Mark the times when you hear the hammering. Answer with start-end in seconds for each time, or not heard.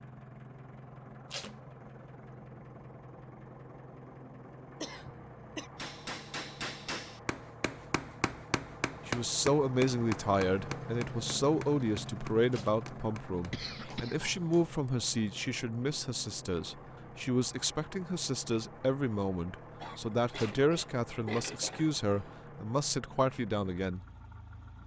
5.8-14.8.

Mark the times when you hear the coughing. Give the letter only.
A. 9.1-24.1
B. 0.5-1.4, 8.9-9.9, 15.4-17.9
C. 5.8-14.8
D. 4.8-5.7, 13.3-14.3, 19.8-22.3
D.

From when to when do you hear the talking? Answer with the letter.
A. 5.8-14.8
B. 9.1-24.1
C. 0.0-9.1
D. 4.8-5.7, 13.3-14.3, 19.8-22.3
B.